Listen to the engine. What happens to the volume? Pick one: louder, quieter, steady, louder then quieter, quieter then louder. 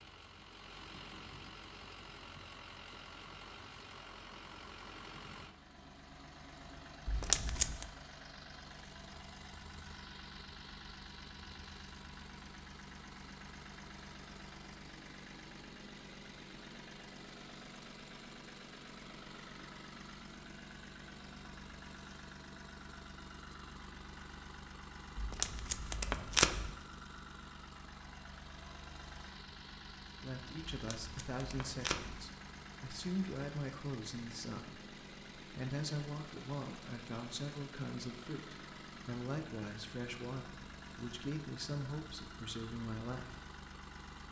steady.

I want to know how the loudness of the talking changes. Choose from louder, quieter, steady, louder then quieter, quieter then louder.
steady.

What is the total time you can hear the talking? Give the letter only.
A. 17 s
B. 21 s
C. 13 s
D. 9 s
C.